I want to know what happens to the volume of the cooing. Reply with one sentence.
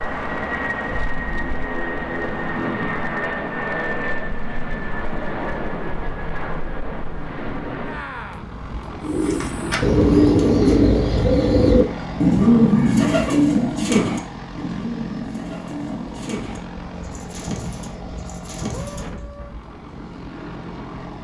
The volume of the cooing goes down.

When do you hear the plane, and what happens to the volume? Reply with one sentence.
You can hear the plane from 0.0 to 21.1 s, getting quieter.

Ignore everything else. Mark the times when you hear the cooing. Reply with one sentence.
You can hear the cooing from 9.0 to 19.2 s.